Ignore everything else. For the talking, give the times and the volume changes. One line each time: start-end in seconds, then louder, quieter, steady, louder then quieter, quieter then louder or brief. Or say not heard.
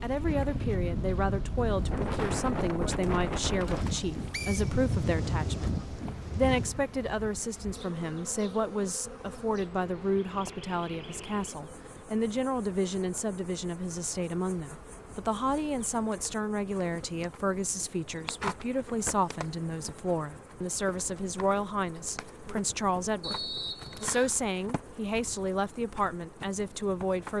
0.0-27.3 steady.